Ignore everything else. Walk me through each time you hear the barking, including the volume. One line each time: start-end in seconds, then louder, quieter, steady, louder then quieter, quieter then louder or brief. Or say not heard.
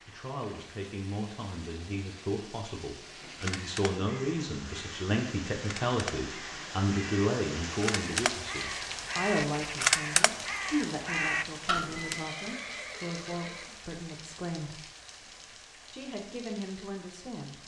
not heard.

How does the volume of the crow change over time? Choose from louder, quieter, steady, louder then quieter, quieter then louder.
louder.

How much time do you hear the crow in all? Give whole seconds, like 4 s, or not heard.
9 s.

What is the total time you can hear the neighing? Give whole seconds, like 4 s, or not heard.
2 s.